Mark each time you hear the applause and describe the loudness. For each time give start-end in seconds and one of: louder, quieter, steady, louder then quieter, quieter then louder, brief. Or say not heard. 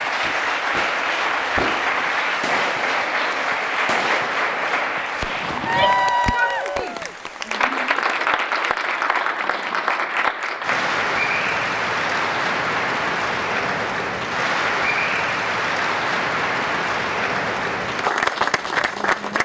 0.0-19.3 steady.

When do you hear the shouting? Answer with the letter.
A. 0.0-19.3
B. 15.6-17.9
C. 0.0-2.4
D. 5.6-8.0
D.